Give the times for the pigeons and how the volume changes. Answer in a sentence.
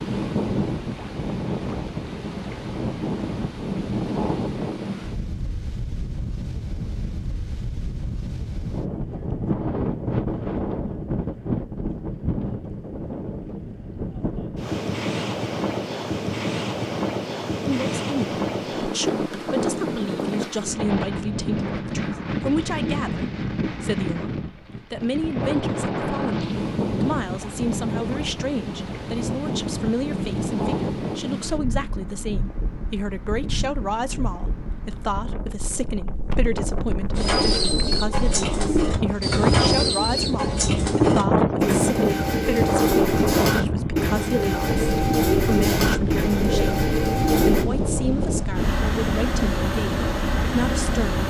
You can hear the pigeons from 37.1 to 47.6 s, at a steady volume.